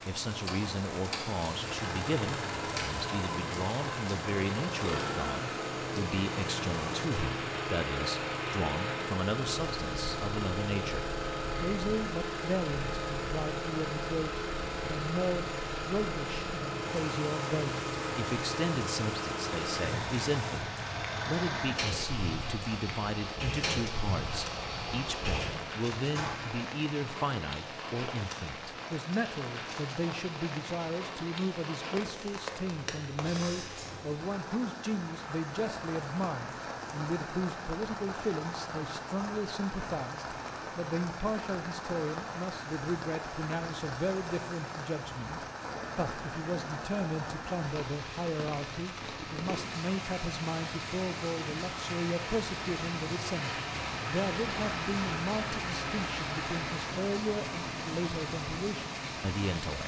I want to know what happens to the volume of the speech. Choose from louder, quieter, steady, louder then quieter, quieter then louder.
steady.